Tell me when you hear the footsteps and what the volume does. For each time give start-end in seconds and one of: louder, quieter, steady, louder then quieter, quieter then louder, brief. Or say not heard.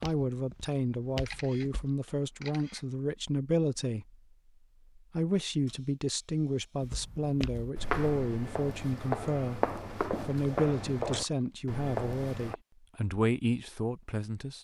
0.0-1.9 brief
6.8-12.6 steady.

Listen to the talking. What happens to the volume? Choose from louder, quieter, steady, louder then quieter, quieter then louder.
steady.